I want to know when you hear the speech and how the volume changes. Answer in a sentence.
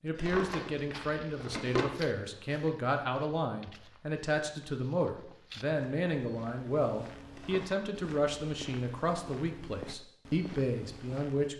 The speech can be heard from 0.0 to 11.5 s, at a steady volume.